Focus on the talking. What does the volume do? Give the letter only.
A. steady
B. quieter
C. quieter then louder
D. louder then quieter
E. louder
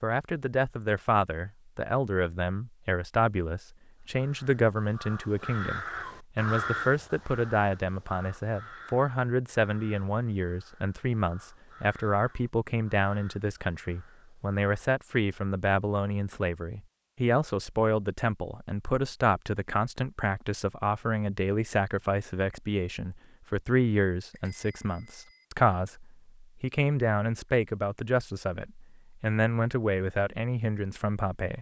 A.